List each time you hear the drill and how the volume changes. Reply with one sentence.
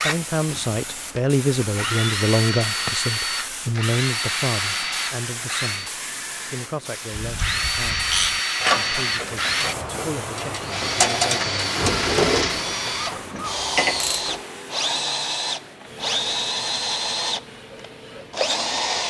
The drill can be heard from 0.0 to 6.0 s, getting louder; and from 7.3 to 19.0 s, at a steady volume.